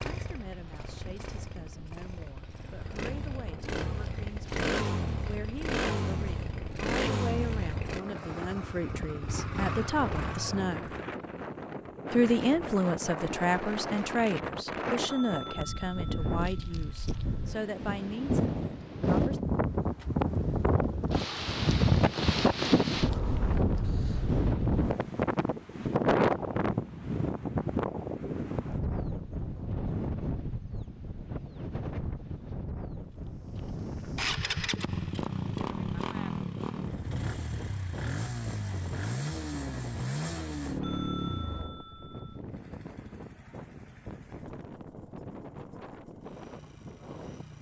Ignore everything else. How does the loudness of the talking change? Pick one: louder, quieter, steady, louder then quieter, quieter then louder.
louder then quieter.